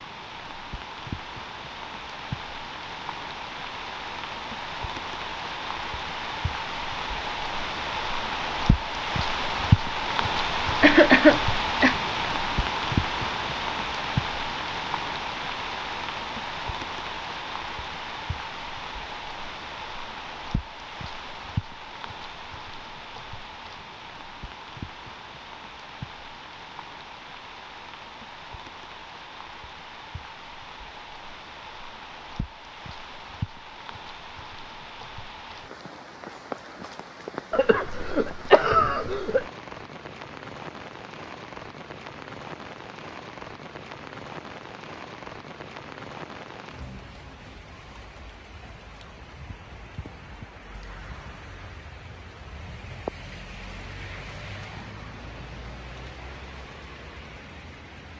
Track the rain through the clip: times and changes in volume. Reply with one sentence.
You can hear the rain from 0.0 to 58.1 s, getting quieter.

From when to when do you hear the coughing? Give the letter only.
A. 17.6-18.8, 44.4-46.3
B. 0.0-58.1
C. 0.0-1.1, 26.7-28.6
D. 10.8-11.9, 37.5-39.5
D.